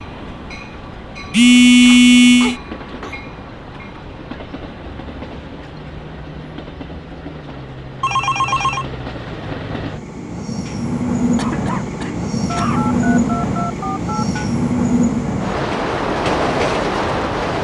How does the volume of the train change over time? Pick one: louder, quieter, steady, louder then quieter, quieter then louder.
louder.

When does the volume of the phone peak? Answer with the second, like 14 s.
2 s.